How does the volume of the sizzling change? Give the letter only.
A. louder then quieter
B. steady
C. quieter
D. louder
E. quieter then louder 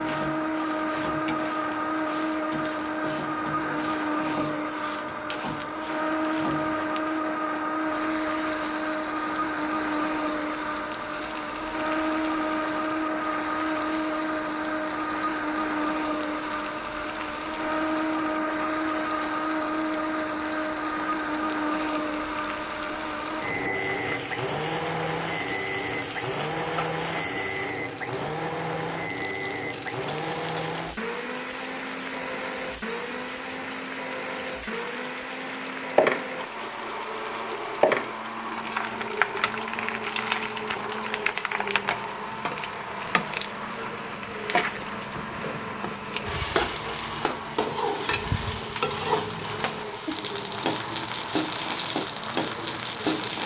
D.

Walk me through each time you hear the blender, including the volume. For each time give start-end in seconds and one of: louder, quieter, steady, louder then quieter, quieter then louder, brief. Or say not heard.
0.0-53.4 quieter.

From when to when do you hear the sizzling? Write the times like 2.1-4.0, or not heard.
0.0-53.4.